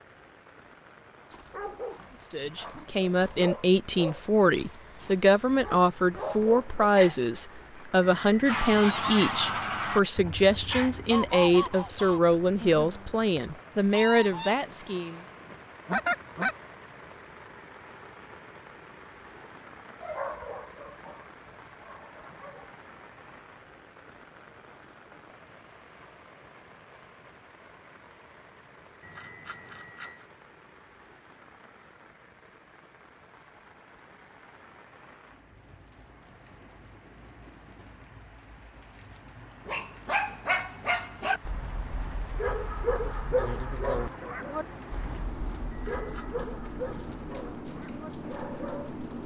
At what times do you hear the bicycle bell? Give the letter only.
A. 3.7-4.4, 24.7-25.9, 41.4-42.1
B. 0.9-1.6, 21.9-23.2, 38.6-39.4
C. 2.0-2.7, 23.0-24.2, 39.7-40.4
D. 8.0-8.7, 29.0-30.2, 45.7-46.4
D.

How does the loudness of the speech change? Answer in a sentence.
The loudness of the speech stays about the same.